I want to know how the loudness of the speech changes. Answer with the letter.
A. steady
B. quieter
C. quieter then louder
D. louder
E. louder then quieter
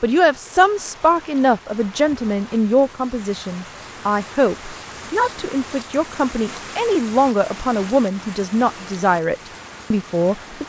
A.